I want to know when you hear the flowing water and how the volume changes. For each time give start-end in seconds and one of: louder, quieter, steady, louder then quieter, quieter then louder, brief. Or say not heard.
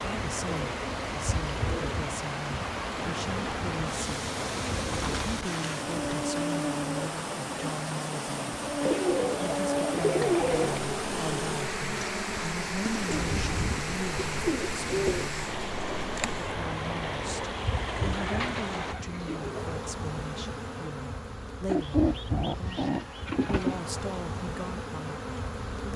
0.0-18.9 steady.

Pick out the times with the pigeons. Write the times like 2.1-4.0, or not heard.
0.5-2.0, 4.4-6.5, 8.8-10.8, 13.1-15.3, 18.1-19.7, 21.6-23.9.